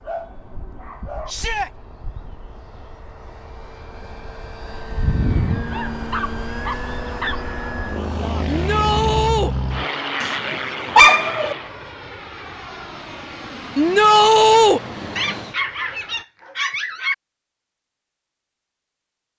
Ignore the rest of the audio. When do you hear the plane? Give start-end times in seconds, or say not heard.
0.0-16.2.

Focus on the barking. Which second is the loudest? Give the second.
11 s.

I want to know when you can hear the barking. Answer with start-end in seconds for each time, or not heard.
0.0-1.4, 5.7-7.5, 10.2-11.6, 15.2-17.1.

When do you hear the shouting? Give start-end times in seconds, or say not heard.
1.2-1.7, 8.4-9.6, 13.8-14.8.